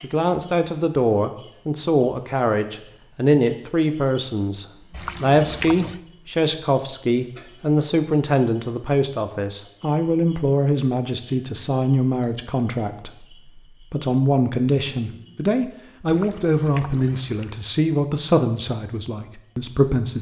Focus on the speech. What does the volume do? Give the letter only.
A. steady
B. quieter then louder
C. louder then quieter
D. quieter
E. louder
A.